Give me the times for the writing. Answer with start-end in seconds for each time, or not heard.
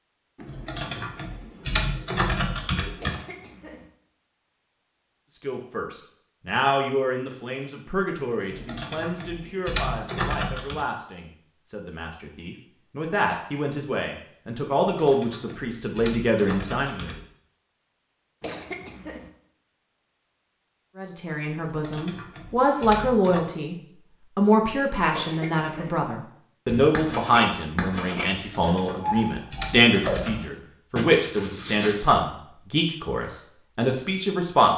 26.6-32.1.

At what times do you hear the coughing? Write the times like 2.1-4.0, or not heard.
3.0-3.9, 18.4-19.3, 25.1-26.0.